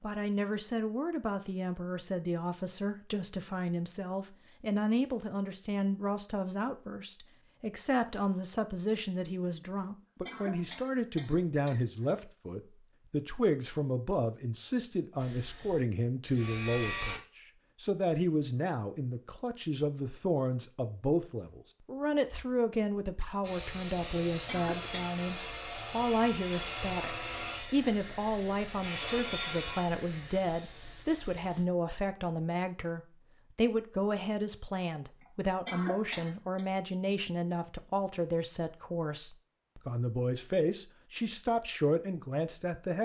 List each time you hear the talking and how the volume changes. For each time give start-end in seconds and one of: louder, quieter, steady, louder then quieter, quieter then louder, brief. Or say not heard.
0.0-43.0 steady.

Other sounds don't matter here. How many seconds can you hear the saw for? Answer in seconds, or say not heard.
10 s.